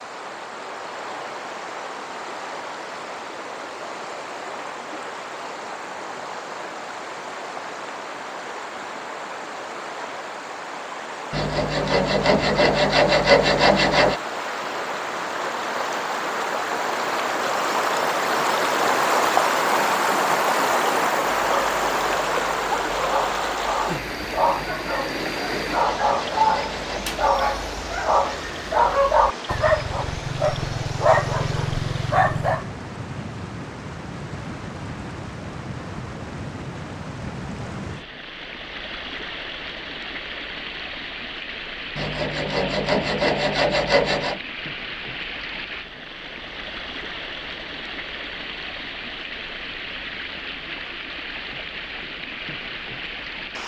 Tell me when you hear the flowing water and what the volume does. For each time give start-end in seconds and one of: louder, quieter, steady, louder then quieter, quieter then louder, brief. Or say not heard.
0.0-53.6 louder then quieter.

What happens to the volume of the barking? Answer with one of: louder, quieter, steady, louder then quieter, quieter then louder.
louder.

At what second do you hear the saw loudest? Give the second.
13 s.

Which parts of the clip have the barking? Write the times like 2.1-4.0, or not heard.
21.4-32.6.